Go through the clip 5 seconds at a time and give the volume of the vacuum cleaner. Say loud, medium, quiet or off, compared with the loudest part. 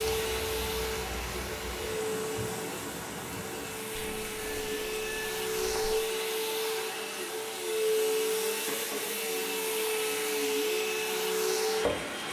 medium, loud, loud.